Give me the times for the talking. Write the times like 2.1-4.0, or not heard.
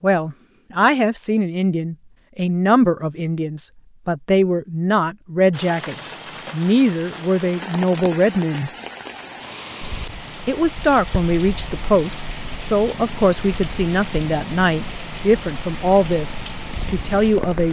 0.0-8.7, 10.4-17.6.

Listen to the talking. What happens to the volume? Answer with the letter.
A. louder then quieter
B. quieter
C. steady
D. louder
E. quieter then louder
C.